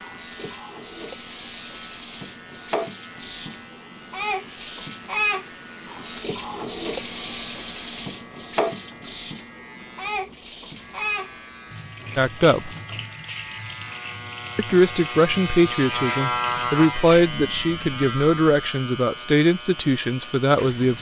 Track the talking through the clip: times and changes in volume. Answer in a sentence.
You can hear the talking briefly from 12.2 to 12.7 s; and from 14.6 to 20.9 s, at a steady volume.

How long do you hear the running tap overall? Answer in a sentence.
You can hear the running tap for 21 seconds altogether.